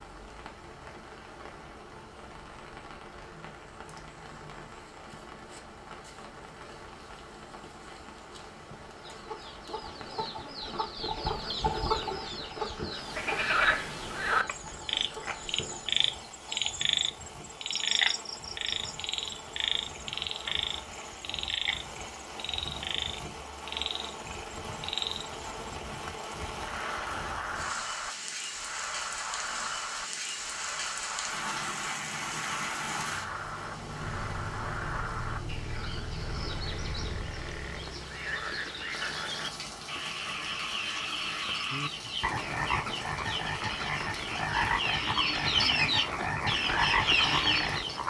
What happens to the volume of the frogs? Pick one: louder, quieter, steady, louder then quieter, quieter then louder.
quieter then louder.